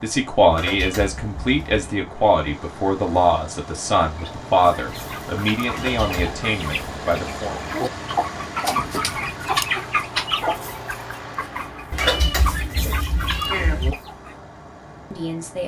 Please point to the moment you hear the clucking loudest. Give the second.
10 s.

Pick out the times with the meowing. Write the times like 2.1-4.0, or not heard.
0.5-1.9, 5.7-6.3, 11.9-13.9.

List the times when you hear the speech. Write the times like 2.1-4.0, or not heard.
0.0-7.6, 12.6-13.1, 15.1-15.6.